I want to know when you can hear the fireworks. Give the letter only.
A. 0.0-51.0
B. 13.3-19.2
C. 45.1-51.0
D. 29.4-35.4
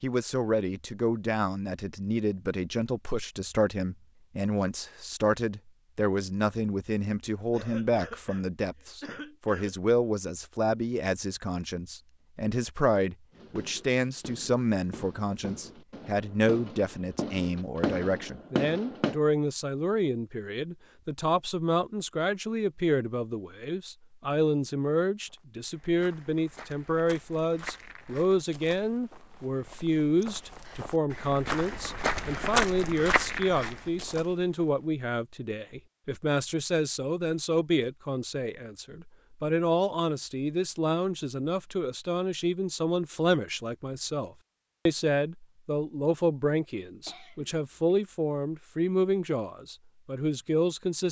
B.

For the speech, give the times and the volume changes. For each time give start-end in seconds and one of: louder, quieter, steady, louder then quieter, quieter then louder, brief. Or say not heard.
0.0-51.0 steady.